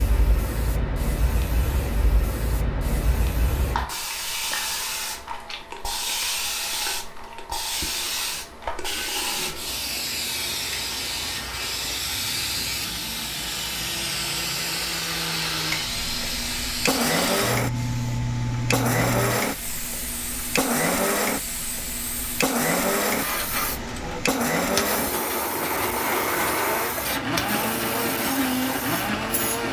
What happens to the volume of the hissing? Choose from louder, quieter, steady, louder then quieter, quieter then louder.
steady.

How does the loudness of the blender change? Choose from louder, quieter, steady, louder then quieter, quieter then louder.
louder.